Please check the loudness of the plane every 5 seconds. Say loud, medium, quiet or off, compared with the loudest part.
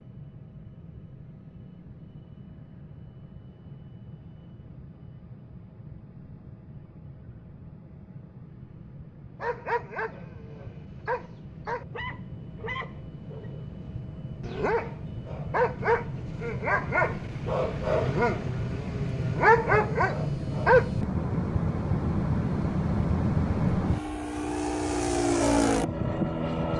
quiet, quiet, quiet, medium, loud, loud.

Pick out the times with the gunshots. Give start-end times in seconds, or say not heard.
not heard.